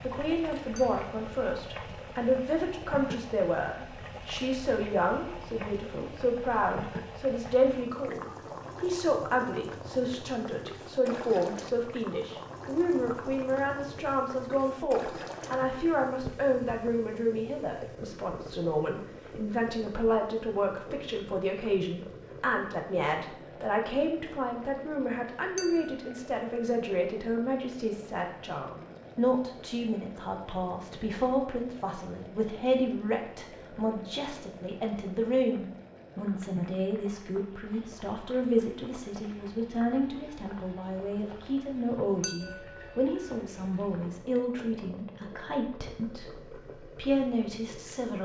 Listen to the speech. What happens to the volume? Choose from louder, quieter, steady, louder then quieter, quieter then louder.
steady.